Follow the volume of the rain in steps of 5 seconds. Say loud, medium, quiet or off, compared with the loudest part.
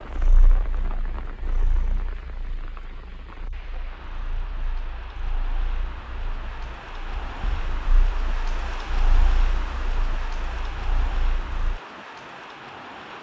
medium, loud, loud.